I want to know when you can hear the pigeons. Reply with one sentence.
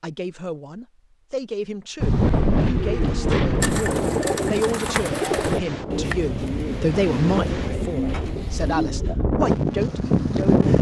The pigeons can be heard from 2.7 to 9.2 s.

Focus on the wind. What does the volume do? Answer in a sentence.
The volume of the wind goes down, then up.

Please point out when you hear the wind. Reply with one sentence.
The wind can be heard from 2.0 to 10.7 s.